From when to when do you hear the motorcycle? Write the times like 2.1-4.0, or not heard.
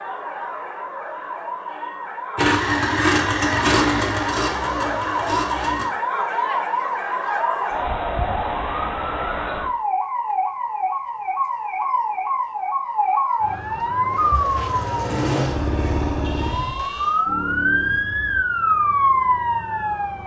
2.4-5.9, 14.0-18.4.